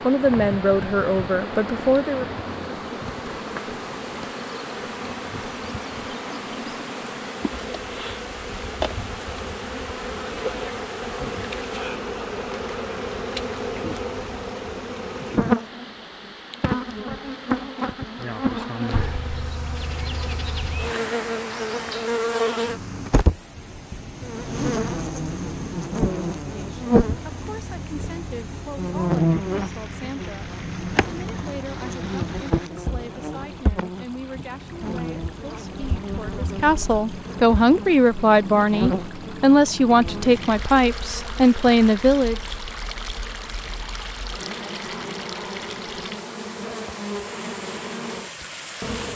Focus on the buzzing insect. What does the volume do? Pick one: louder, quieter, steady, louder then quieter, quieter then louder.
louder then quieter.